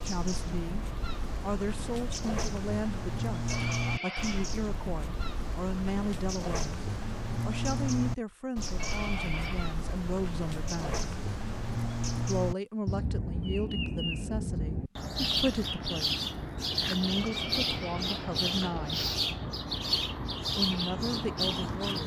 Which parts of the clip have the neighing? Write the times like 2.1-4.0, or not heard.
3.5-4.5, 8.8-9.8, 17.1-19.2.